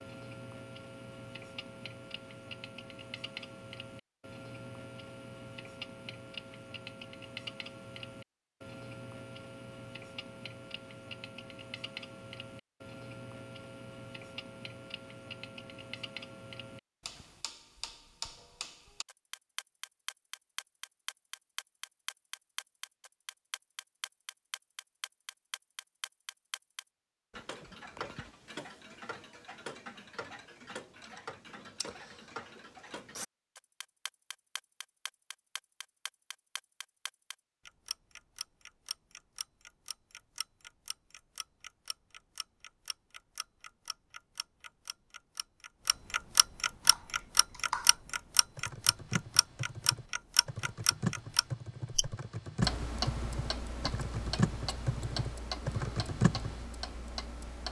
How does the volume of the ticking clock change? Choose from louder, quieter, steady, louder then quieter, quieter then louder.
louder.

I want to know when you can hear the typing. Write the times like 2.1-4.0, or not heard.
46.8-48.0, 48.5-56.5.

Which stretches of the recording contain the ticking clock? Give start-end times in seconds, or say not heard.
0.0-57.6.